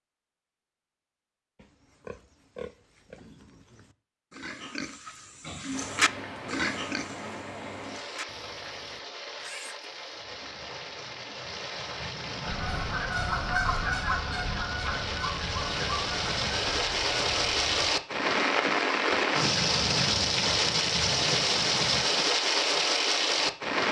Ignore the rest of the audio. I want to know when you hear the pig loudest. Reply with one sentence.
The loudest moment of the pig is at 6 seconds.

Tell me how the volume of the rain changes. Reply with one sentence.
The loudness of the rain goes up.